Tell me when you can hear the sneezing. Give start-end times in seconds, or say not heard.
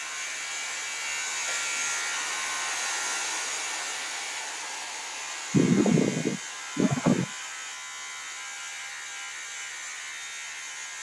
1.2-1.8, 5.5-7.3.